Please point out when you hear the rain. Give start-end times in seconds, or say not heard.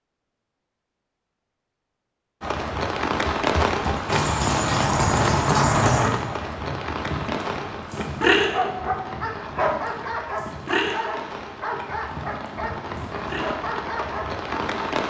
2.4-15.0.